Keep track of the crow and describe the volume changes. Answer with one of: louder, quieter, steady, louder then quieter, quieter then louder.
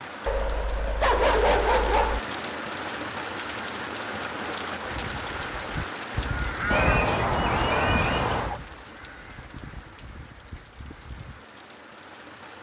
louder then quieter.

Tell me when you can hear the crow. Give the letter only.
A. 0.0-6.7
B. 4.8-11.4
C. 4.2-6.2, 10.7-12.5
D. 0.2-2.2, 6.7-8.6
B.